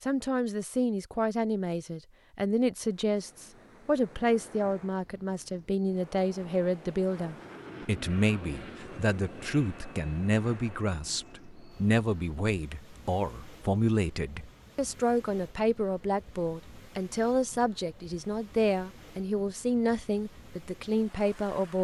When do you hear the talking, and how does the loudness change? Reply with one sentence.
The talking can be heard from 0.0 to 21.7 s, at a steady volume.